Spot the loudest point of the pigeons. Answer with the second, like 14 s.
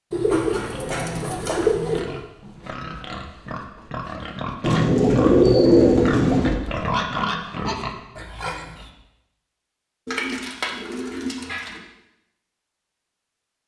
6 s.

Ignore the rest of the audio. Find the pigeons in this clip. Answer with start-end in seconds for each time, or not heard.
0.1-2.0, 4.6-6.5, 10.1-11.8.